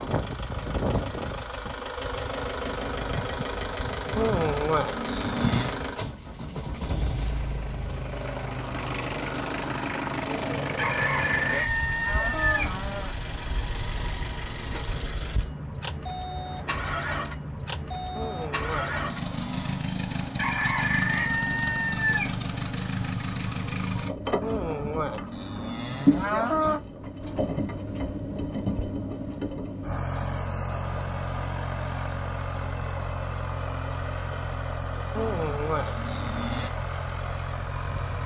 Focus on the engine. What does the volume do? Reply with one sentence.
The loudness of the engine stays about the same.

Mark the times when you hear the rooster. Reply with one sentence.
The rooster can be heard from 10.8 to 12.7 s and from 20.4 to 22.2 s.